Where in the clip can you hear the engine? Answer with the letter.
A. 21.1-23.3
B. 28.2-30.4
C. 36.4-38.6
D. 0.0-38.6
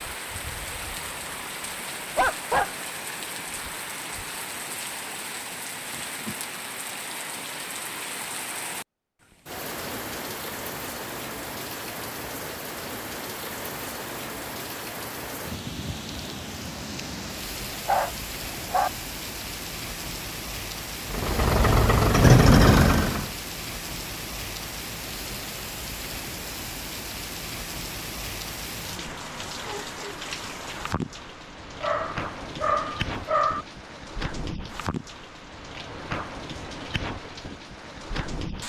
A.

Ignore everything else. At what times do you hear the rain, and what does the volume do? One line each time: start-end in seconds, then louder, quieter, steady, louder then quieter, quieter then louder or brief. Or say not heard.
0.0-38.6 steady.